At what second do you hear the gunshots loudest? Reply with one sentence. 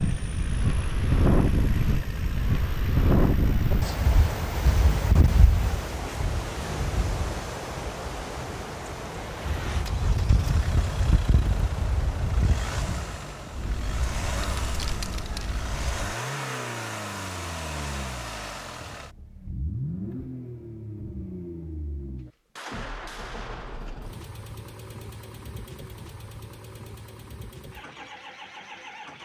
The loudest moment of the gunshots is at 23 seconds.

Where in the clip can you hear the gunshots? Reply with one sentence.
You can hear the gunshots from 22.6 to 24.1 s.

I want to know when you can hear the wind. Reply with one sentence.
The wind can be heard from 0.0 to 16.1 s.